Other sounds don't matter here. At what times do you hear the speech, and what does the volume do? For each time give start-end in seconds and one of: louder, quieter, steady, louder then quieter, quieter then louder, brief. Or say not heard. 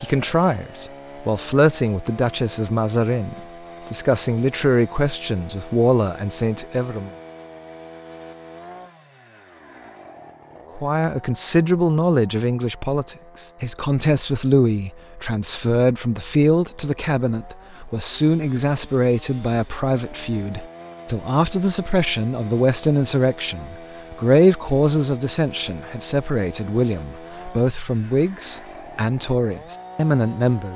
0.0-7.1 steady
10.8-30.7 steady.